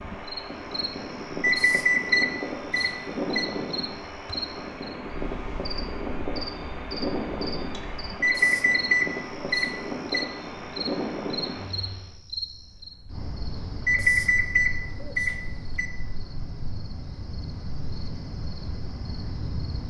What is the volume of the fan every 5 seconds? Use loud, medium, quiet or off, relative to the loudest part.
loud, loud, loud, off.